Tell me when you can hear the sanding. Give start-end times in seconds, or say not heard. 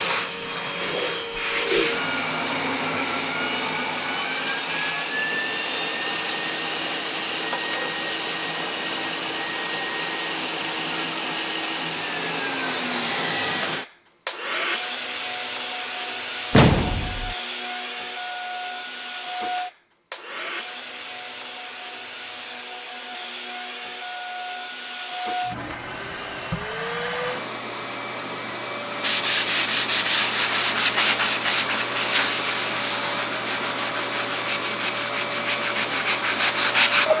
29.0-37.1.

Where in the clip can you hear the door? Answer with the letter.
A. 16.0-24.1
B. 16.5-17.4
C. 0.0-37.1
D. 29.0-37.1
B.